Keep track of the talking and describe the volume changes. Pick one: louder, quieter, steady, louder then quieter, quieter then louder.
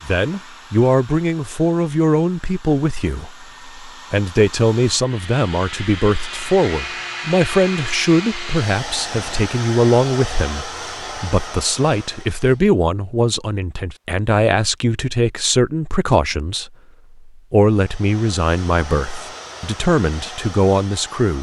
steady.